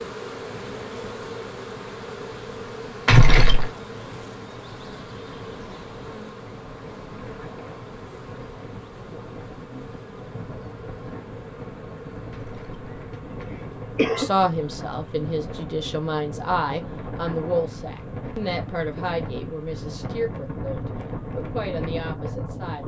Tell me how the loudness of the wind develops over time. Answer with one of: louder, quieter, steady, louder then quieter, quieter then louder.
louder.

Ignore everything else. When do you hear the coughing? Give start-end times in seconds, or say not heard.
3.0-3.7, 12.4-12.9, 13.7-14.3.